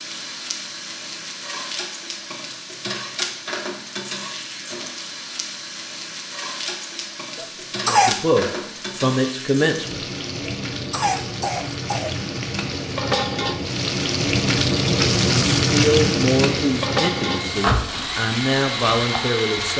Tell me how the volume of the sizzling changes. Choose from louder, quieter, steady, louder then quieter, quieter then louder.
louder.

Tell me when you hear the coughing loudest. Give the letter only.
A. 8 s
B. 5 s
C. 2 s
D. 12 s
A.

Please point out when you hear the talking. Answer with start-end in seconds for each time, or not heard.
7.8-10.1, 15.3-19.7.